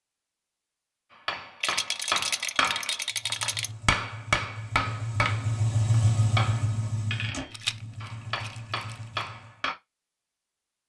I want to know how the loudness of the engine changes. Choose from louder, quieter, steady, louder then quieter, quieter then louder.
louder then quieter.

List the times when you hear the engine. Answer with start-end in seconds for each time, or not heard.
3.1-9.7.